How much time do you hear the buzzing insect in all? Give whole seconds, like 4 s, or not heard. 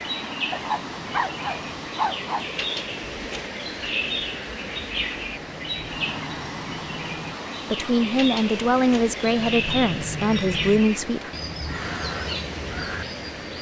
not heard.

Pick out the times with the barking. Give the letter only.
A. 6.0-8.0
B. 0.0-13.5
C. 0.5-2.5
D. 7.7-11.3
C.